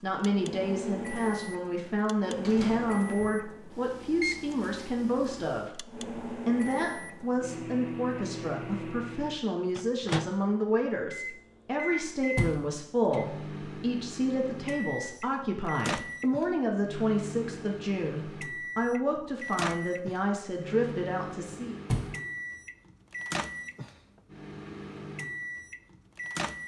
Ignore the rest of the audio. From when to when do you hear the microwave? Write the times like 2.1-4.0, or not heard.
0.2-26.6.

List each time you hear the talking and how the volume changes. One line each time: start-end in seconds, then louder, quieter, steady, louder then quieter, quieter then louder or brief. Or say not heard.
0.0-21.8 steady.